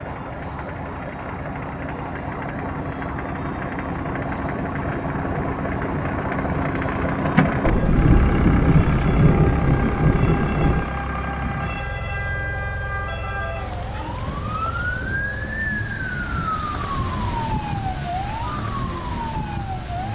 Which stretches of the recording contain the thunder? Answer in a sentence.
The thunder can be heard from 7.6 to 10.9 s.